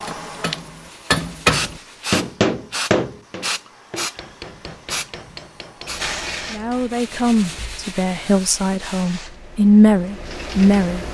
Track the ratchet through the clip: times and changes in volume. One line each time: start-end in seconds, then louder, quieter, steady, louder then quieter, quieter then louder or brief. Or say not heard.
not heard.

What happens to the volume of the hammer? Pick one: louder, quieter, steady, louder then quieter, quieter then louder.
quieter.